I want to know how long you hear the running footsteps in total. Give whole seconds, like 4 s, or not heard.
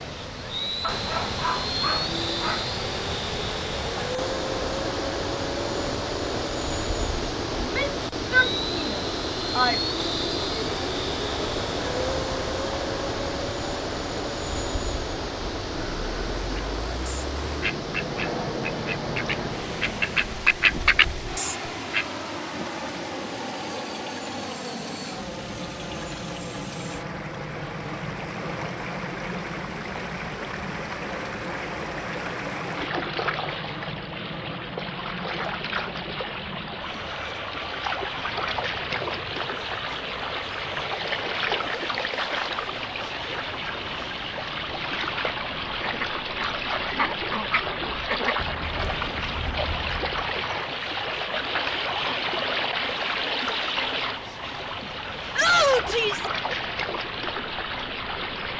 not heard.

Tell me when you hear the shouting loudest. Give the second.
56 s.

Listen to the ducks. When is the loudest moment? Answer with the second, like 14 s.
21 s.